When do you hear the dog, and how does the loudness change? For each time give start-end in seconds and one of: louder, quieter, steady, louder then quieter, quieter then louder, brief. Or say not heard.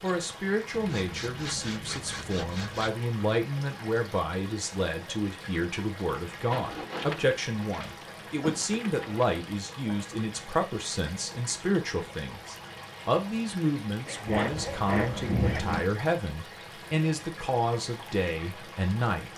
not heard.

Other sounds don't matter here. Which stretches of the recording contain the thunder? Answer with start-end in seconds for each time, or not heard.
14.3-15.8.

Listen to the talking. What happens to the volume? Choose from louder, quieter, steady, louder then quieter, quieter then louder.
steady.